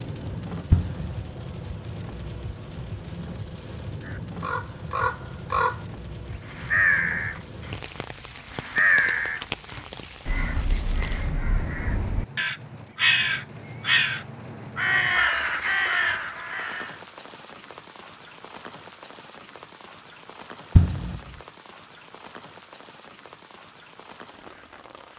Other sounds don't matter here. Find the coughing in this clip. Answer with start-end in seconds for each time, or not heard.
0.7-1.1, 20.8-21.2.